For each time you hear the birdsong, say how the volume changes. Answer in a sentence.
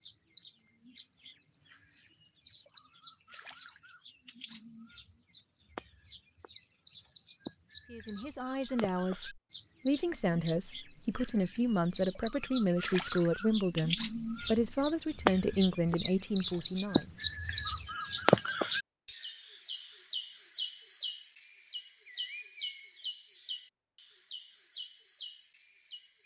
The birdsong can be heard from 0.0 to 26.2 s, getting louder then quieter.